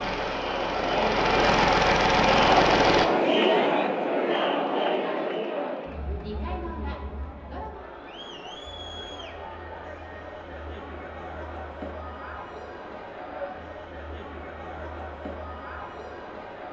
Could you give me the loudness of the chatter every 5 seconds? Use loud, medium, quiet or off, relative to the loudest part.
loud, medium, quiet, quiet.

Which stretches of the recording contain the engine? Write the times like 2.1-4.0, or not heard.
0.0-3.0.